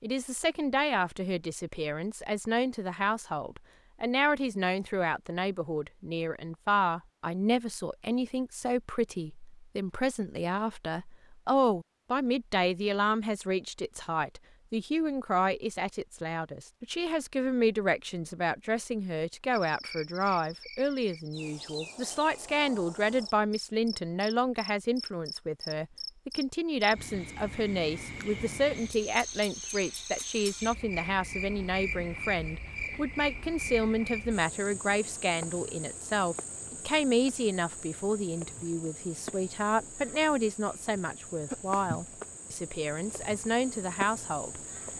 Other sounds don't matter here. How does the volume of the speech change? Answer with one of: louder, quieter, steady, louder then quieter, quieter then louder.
steady.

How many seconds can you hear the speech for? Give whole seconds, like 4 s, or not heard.
45 s.